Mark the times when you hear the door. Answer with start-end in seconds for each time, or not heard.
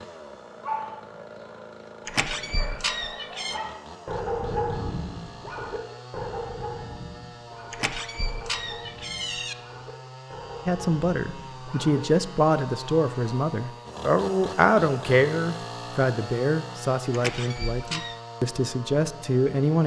2.0-3.6, 7.7-9.6, 17.1-18.1.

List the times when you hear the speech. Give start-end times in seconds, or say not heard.
10.7-19.8.